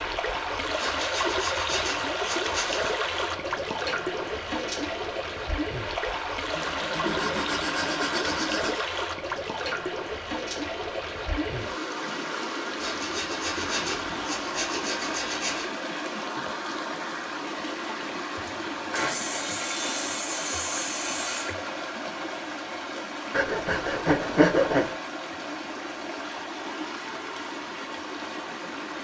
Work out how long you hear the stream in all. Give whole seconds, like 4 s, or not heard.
29 s.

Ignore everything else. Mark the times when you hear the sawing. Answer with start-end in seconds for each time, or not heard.
0.8-3.0, 6.5-8.8, 12.8-15.7, 18.9-21.6, 23.3-24.9.